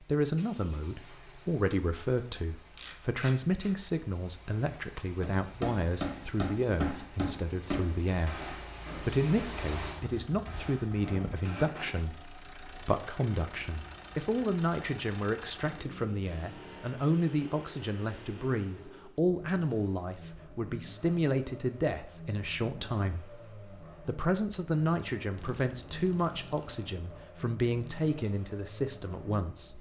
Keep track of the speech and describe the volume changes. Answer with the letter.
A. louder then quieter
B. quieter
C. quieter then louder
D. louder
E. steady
E.